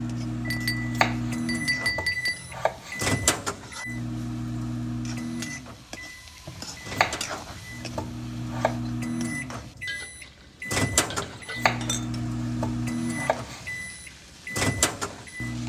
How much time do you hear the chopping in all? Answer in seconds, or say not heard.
8 s.